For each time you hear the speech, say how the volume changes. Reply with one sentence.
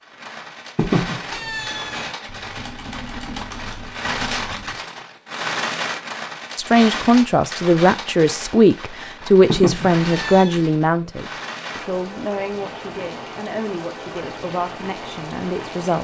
The speech can be heard from 6.5 to 16.0 s, getting quieter.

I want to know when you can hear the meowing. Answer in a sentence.
You can hear the meowing from 0.8 to 2.1 s and from 9.4 to 10.6 s.